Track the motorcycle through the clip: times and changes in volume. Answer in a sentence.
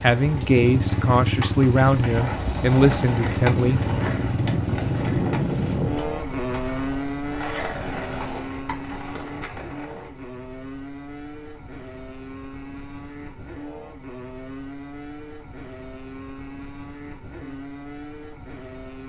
You can hear the motorcycle from 0.0 to 19.0 s, getting quieter.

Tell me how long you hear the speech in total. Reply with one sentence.
The speech can be heard for 4 seconds in total.